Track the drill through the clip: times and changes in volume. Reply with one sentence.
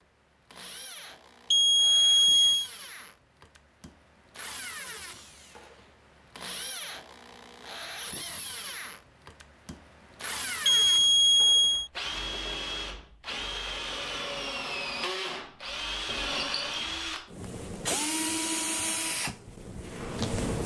The drill can be heard from 0.0 to 20.6 s, getting louder.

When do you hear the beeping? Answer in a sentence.
The beeping can be heard from 1.5 to 2.7 s and from 10.7 to 11.9 s.